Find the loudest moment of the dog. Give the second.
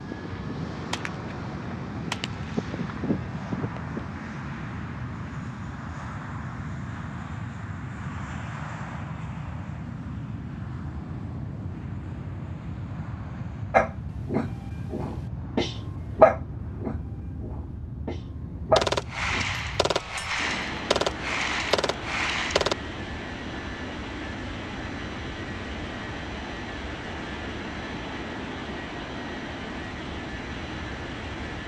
16 s.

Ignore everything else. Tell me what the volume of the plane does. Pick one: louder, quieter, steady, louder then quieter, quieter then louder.
steady.